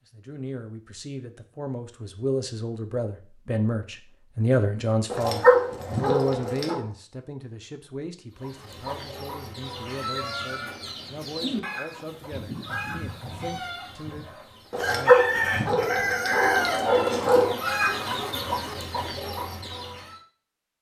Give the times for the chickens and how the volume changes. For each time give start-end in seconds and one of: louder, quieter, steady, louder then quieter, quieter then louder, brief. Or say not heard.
8.4-20.2 louder.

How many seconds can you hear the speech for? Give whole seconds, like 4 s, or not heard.
15 s.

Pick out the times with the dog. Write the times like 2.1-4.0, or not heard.
5.1-6.8, 14.7-17.6.